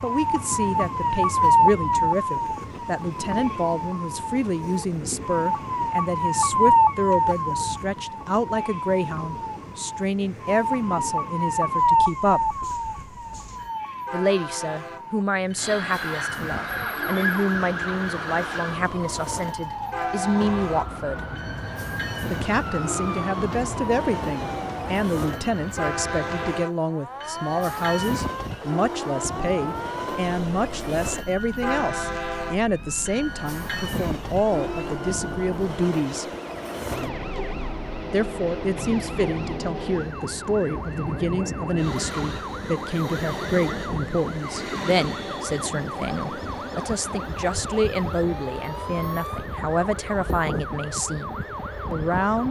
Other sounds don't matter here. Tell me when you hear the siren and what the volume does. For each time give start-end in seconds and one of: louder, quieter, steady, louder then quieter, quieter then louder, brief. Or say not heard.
0.0-52.4 quieter.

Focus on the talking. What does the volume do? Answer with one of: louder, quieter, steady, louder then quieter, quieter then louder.
steady.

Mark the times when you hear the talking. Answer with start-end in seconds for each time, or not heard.
0.0-12.5, 14.1-21.2, 22.3-36.2, 38.1-52.4.